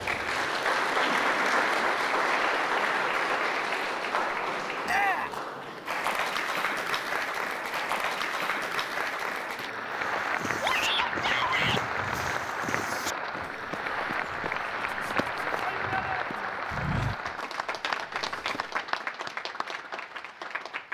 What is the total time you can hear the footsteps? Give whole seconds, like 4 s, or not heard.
9 s.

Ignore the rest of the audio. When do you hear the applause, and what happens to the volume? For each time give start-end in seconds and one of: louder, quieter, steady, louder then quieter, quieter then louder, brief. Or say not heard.
0.0-20.9 quieter.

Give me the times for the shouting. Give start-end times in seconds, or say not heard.
4.8-5.3, 10.6-11.8, 15.6-16.6.